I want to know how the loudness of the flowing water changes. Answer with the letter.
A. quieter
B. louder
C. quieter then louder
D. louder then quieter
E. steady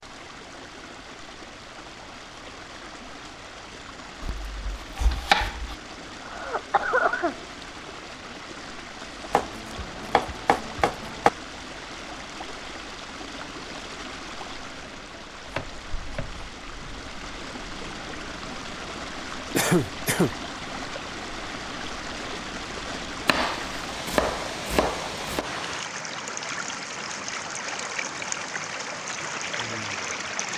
B.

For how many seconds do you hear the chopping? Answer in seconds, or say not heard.
7 s.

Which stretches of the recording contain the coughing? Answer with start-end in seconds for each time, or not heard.
6.2-7.4, 19.6-20.4.